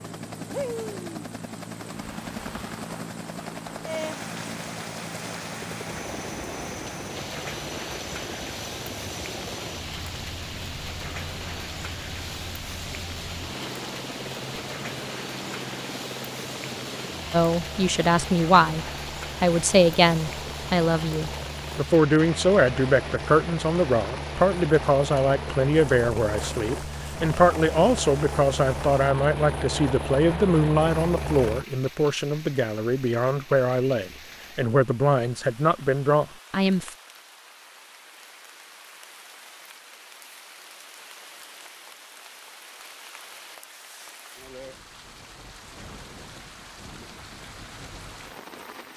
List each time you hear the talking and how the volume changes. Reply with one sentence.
The talking can be heard from 17.3 to 37.0 s, at a steady volume.